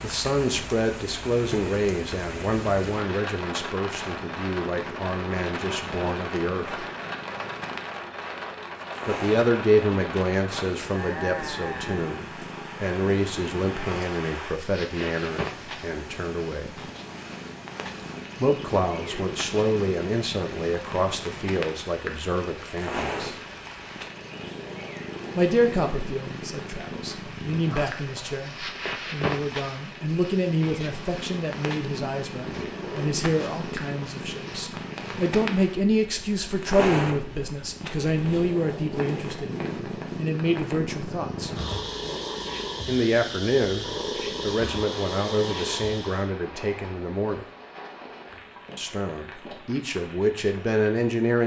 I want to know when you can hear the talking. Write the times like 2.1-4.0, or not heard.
0.0-6.8, 9.1-16.8, 18.4-23.4, 25.4-41.5, 42.9-47.5, 48.8-51.4.